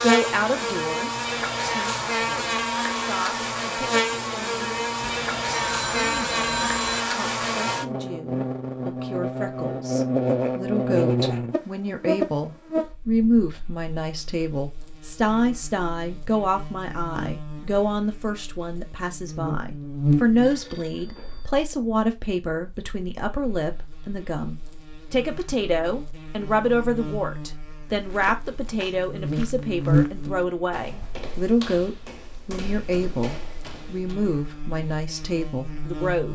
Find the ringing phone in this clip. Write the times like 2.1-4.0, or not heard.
5.0-7.0, 20.4-21.5.